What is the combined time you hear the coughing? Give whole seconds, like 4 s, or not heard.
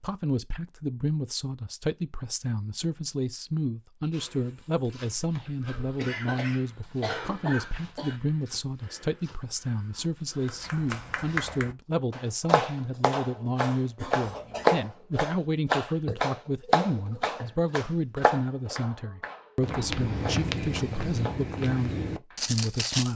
3 s.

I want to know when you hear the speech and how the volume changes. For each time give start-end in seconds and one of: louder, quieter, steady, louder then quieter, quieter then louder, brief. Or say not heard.
0.0-23.1 steady.